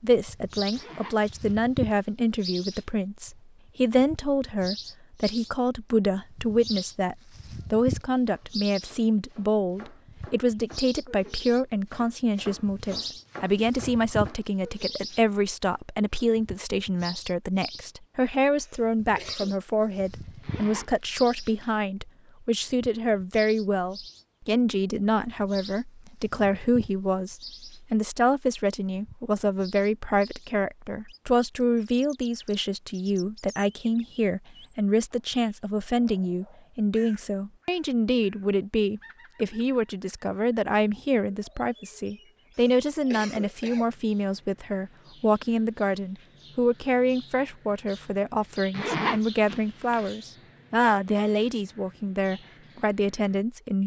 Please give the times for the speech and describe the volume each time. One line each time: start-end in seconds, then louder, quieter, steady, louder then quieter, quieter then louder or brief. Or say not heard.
0.0-53.8 steady.